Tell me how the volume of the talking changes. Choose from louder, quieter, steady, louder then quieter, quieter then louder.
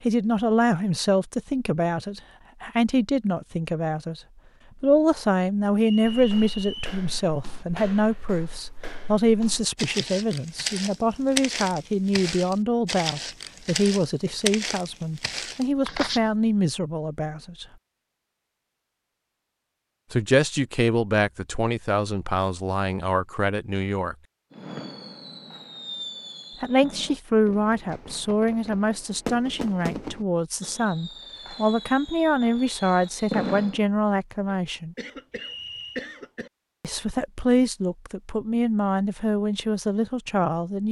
steady.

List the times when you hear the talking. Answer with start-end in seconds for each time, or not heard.
0.0-4.2, 4.8-17.6, 20.1-24.1, 26.6-35.0, 36.8-40.8.